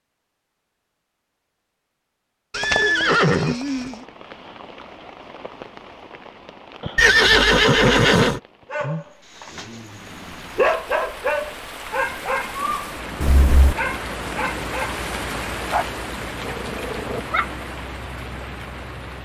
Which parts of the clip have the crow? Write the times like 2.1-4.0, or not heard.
not heard.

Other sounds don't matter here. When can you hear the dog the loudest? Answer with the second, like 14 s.
11 s.